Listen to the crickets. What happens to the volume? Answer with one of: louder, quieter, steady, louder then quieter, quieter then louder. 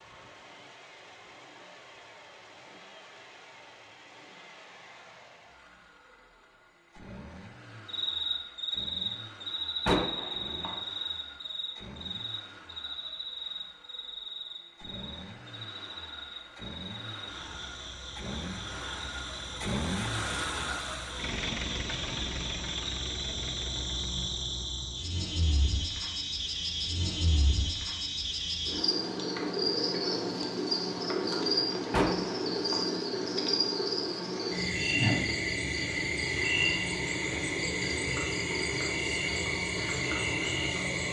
quieter then louder.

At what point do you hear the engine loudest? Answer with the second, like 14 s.
20 s.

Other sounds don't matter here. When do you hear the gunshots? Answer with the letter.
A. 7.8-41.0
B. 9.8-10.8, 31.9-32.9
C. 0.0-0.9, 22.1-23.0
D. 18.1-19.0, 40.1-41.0
B.